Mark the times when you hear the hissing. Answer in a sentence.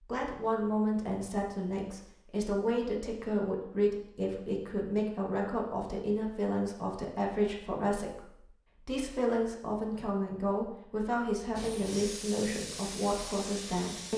The hissing can be heard from 11.6 to 14.1 s.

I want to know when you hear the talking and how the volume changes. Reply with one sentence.
You can hear the talking from 0.0 to 14.1 s, at a steady volume.